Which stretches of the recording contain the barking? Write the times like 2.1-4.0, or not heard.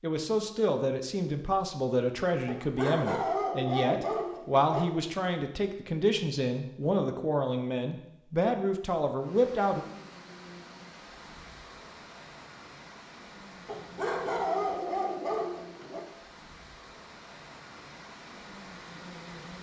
2.5-4.8, 13.7-16.1.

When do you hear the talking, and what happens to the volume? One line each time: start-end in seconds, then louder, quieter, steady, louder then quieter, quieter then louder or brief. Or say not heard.
0.0-9.8 steady.